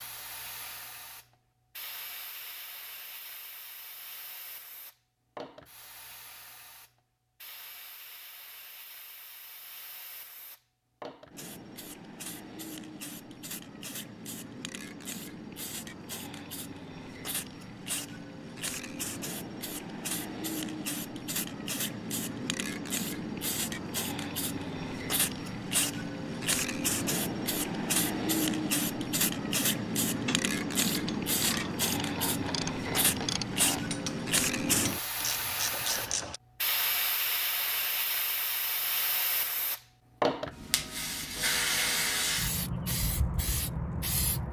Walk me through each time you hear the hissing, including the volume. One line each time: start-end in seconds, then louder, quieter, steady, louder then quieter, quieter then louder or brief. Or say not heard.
0.0-44.4 louder.